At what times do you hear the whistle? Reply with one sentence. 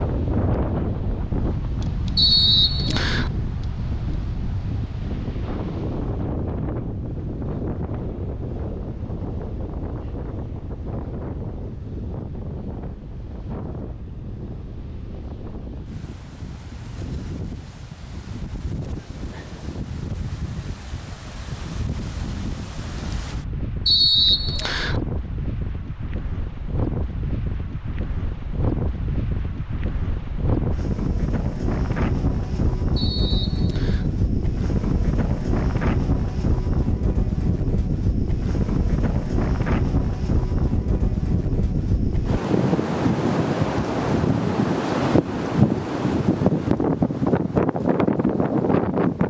The whistle can be heard from 2.1 to 3.3 s, from 23.9 to 25.0 s and from 33.0 to 34.1 s.